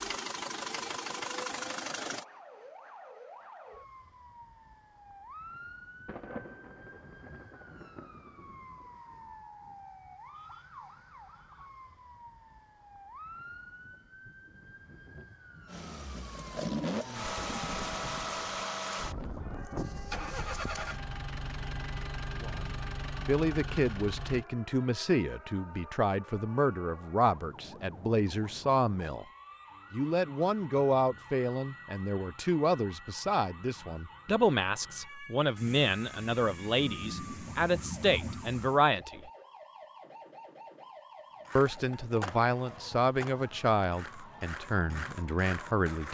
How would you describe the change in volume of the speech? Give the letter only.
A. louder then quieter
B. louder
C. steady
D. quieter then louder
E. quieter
C.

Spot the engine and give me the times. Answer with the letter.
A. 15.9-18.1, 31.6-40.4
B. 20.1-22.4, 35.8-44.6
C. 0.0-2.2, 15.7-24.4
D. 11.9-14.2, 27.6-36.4
C.